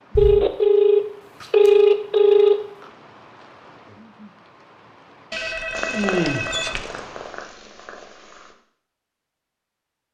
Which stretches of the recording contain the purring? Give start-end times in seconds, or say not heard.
5.8-8.6.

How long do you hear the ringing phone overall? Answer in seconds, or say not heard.
4 s.